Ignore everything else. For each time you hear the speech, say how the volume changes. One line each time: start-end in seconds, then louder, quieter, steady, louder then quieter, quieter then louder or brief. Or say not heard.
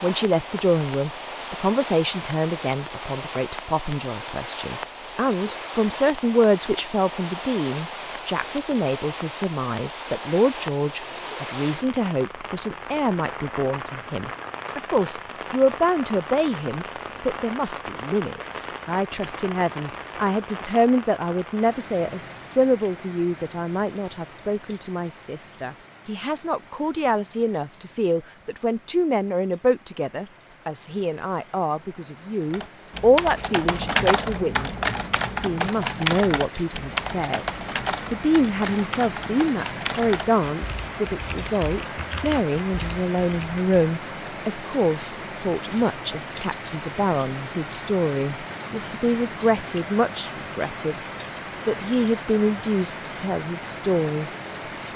0.0-34.7 steady
35.3-37.5 brief
38.1-51.0 steady
51.6-54.3 brief.